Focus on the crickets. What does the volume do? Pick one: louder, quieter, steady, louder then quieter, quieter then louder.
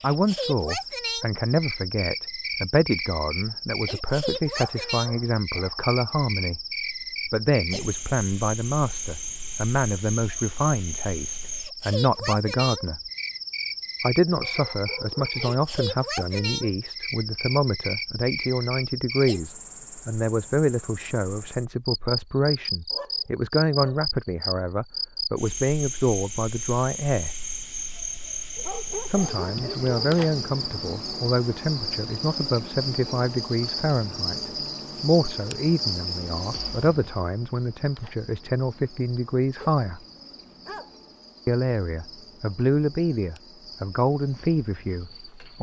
quieter.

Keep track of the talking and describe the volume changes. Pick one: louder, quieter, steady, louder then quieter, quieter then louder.
steady.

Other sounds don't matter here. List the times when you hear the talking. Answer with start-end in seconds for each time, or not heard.
0.0-6.6, 7.2-13.0, 14.0-27.3, 29.1-40.0, 41.5-45.5.